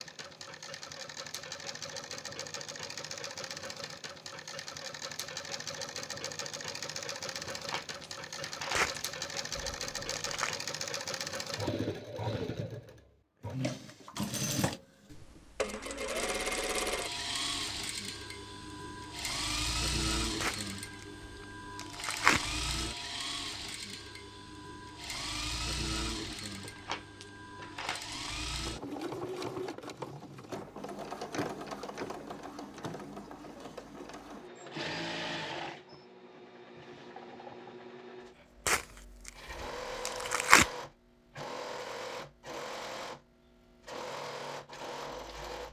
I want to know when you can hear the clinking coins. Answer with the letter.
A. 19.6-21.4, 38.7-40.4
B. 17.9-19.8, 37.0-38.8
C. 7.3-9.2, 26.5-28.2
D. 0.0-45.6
C.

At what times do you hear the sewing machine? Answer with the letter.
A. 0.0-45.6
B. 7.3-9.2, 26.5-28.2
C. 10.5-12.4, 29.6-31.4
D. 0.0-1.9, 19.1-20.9
A.